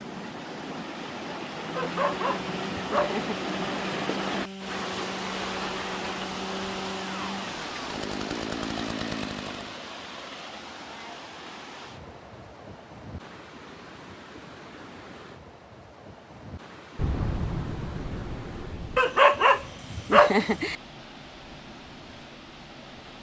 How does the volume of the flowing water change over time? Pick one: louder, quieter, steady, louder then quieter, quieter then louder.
quieter.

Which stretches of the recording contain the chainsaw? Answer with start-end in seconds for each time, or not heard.
1.5-9.8.